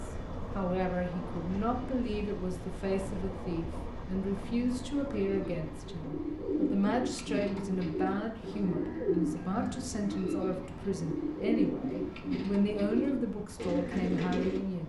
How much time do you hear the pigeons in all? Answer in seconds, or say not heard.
10 s.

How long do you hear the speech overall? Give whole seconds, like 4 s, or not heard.
15 s.